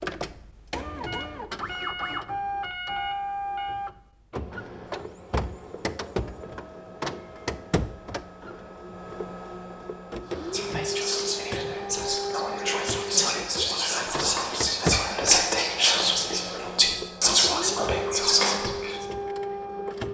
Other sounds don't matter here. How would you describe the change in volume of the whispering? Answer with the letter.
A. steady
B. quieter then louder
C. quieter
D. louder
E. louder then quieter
D.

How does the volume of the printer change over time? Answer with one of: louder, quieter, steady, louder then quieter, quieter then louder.
steady.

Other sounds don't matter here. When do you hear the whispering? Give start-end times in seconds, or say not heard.
10.3-19.1.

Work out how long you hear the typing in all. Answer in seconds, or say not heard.
not heard.